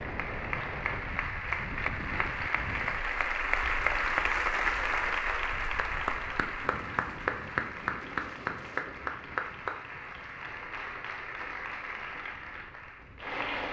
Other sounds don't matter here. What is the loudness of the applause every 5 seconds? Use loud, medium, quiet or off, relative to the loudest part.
loud, loud, medium.